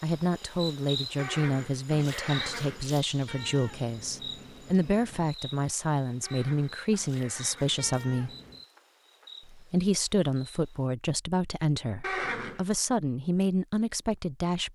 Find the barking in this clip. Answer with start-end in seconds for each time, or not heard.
not heard.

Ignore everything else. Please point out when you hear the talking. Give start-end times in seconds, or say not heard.
0.0-8.3, 9.4-14.7.